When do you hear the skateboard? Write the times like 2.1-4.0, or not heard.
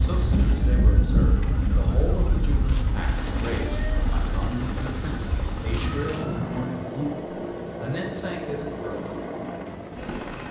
not heard.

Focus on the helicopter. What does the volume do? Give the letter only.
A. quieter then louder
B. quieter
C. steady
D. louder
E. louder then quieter
D.